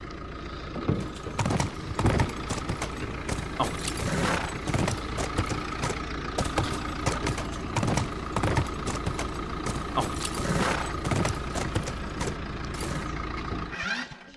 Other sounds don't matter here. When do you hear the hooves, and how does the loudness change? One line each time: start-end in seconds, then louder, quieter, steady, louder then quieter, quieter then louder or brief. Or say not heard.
1.0-13.1 steady.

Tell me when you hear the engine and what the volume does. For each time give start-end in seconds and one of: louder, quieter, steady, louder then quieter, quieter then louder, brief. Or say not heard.
0.0-14.3 steady.